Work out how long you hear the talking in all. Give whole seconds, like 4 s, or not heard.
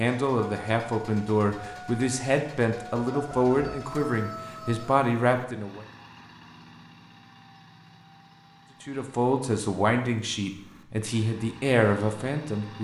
10 s.